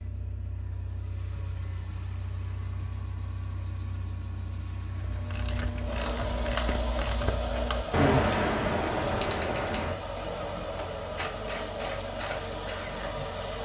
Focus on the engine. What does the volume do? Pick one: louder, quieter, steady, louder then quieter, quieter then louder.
louder.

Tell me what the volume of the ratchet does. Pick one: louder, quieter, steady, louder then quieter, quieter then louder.
quieter.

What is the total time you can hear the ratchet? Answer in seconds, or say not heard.
8 s.